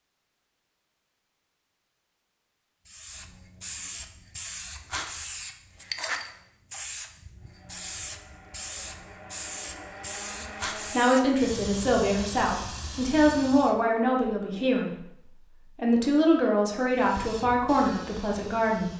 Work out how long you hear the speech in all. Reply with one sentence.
You can hear the speech for 8 seconds altogether.